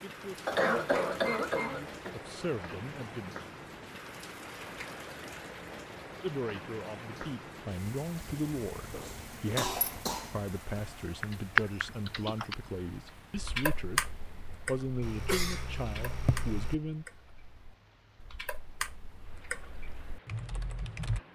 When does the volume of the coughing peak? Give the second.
1 s.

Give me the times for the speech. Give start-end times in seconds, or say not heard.
0.0-3.4, 6.2-14.1, 14.7-17.1.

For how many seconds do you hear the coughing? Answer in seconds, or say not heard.
5 s.